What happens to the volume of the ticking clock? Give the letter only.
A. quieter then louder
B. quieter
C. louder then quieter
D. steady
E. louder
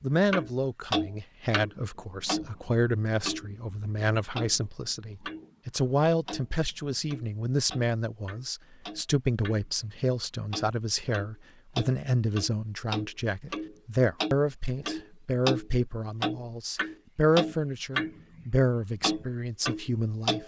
A.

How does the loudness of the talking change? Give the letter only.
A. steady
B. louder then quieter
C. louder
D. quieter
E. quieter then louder
A.